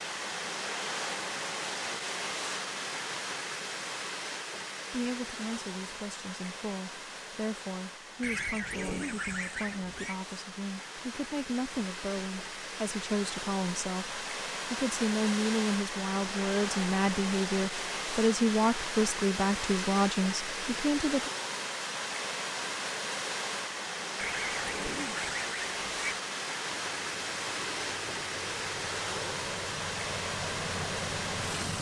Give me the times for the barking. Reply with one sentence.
You can't hear the barking here.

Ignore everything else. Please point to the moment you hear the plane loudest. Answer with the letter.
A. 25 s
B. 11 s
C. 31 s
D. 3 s
C.